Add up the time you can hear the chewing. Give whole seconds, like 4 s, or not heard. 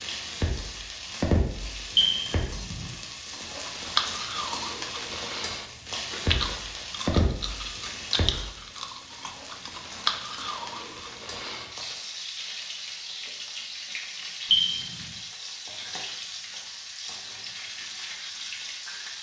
8 s.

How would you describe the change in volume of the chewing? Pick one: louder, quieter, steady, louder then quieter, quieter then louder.
quieter then louder.